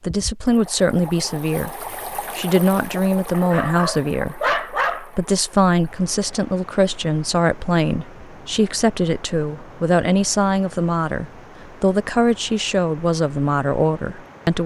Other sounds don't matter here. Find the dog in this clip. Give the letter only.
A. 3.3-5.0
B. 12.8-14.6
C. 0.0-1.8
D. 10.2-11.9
A.